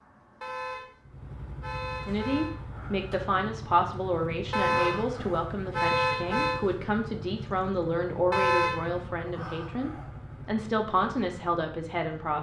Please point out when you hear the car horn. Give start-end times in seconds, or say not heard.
0.4-2.5, 4.5-6.6, 8.3-9.1.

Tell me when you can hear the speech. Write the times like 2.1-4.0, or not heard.
2.0-12.3.